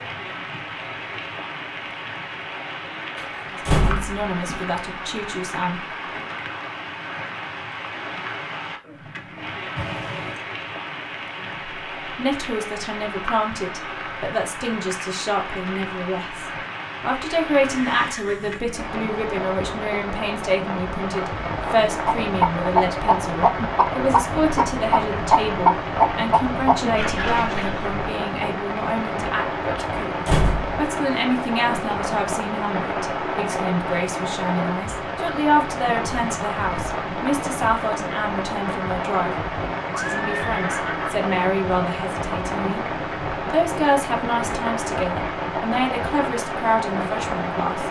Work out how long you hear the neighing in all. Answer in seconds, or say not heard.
3 s.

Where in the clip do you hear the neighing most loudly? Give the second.
40 s.